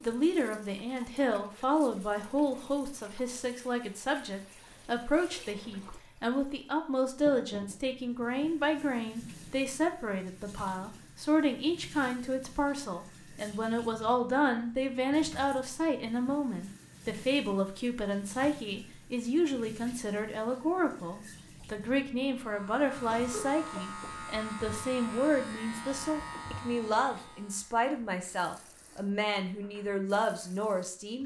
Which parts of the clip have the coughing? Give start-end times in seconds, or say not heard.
23.1-24.2.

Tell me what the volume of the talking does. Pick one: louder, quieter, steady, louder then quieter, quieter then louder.
steady.